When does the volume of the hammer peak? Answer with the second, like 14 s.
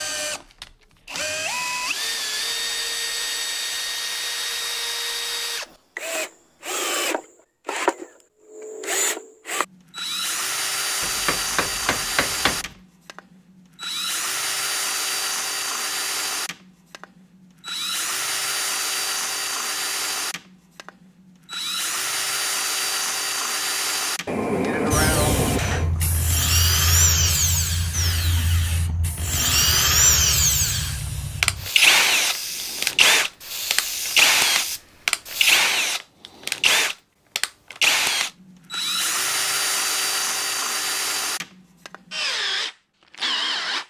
25 s.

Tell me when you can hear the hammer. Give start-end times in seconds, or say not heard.
11.0-12.6, 24.2-25.9.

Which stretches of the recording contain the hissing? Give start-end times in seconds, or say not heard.
24.9-35.6.